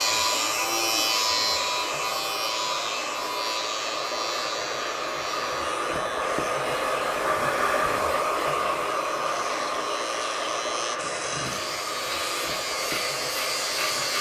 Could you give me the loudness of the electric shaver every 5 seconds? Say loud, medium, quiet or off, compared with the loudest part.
loud, medium, loud.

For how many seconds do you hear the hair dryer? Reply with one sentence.
You can hear the hair dryer for 14 seconds altogether.